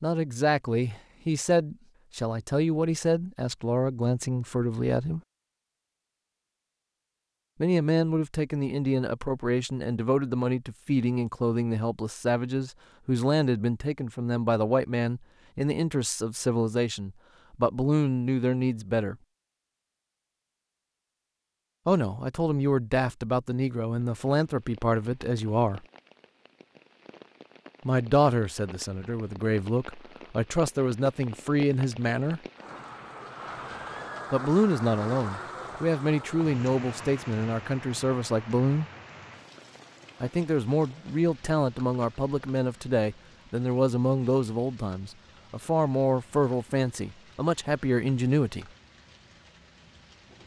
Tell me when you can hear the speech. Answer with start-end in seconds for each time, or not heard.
0.0-5.2, 7.6-19.1, 21.9-25.9, 27.9-32.4, 34.3-38.9, 40.2-48.6.